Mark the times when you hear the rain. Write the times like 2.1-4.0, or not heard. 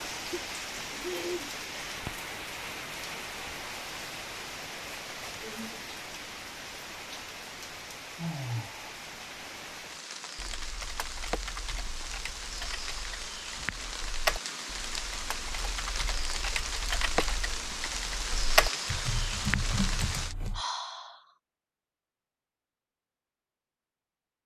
0.0-20.4.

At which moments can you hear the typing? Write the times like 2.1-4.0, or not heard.
10.3-20.6.